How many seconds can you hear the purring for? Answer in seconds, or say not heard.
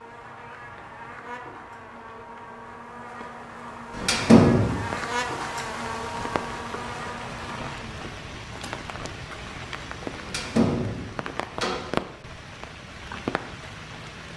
not heard.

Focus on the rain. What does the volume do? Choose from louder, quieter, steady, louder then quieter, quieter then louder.
louder.